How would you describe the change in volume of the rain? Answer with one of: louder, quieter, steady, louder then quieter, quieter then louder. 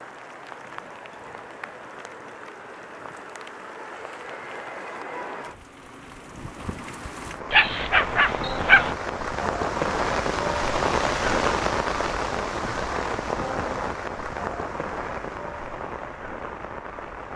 louder then quieter.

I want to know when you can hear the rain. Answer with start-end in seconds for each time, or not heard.
0.0-17.3.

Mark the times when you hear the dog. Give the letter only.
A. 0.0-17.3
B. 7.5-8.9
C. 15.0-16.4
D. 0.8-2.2
B.